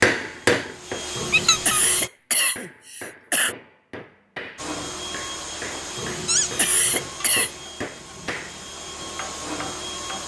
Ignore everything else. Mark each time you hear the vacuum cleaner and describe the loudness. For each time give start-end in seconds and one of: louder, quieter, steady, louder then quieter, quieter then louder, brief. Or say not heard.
0.1-2.1 brief
4.5-10.2 quieter then louder.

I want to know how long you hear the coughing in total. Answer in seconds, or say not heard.
3 s.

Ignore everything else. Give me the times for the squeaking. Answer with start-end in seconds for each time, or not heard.
1.3-1.8, 6.2-8.2.